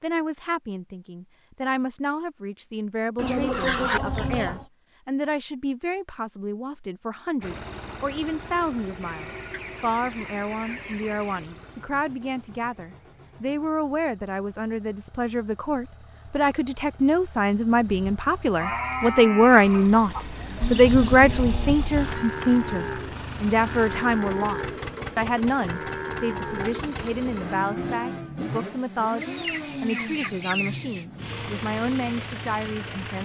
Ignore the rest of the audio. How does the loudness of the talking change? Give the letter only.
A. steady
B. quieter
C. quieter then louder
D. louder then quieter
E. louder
D.